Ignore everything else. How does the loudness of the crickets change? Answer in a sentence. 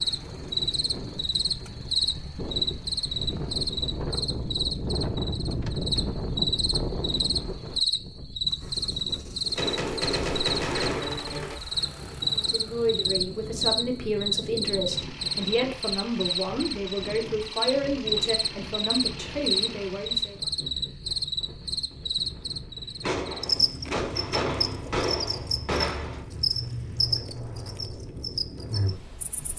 The volume of the crickets stays about the same.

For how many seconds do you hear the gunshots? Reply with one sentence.
The gunshots can be heard for 5 seconds in total.